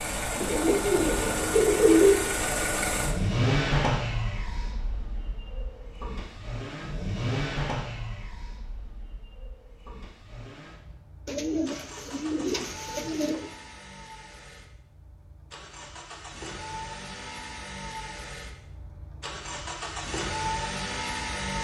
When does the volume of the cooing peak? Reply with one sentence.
The loudest moment of the cooing is at 2 seconds.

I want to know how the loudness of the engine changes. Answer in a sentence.
The loudness of the engine goes down, then up.